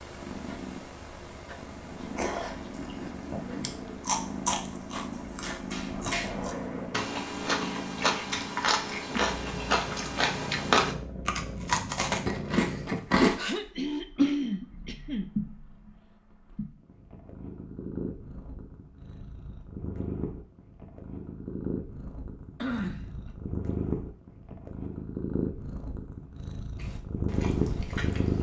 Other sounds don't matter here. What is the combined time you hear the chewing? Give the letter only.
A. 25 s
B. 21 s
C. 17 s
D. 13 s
D.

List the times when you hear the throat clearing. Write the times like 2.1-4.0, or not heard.
2.8-3.8, 13.3-15.3, 22.6-23.4.